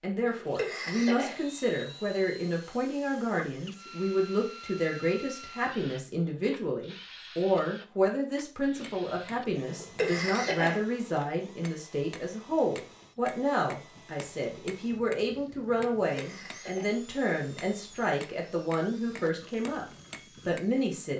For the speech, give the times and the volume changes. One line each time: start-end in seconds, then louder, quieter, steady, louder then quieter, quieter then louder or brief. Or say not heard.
0.0-19.9 steady
20.4-21.1 brief.